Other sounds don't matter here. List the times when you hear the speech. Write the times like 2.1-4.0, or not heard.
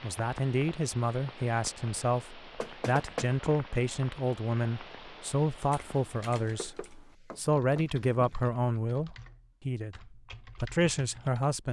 0.0-11.6.